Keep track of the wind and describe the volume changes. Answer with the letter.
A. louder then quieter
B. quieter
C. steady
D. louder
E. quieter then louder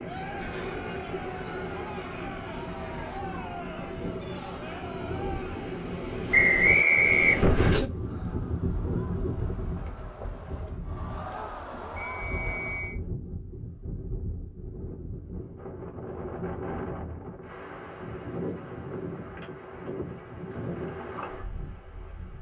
A.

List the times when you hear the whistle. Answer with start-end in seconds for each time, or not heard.
6.3-7.8, 11.9-13.0.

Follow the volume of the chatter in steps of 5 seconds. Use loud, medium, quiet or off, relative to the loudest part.
loud, medium, loud, off, off.